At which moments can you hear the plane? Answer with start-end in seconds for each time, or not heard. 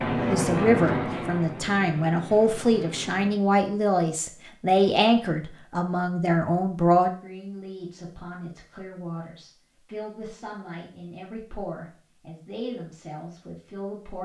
0.0-3.4.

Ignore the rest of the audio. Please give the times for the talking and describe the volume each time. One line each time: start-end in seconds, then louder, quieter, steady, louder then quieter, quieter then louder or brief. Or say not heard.
0.2-14.2 quieter.